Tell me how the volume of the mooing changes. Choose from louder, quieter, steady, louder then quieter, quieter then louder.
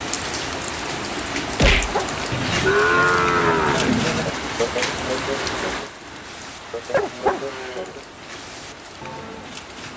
quieter.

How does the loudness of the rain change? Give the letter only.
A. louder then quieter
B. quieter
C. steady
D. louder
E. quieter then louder
B.